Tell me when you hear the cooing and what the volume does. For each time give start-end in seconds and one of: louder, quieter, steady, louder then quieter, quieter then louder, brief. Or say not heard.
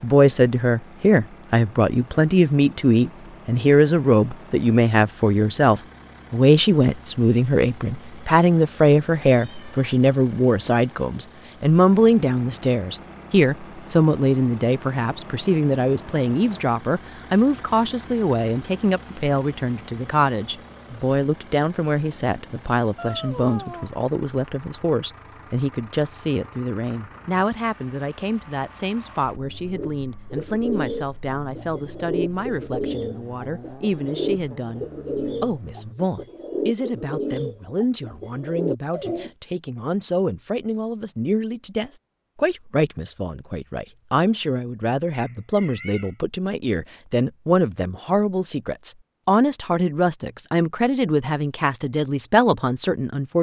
29.7-39.3 steady.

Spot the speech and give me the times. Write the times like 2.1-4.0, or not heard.
0.0-53.3.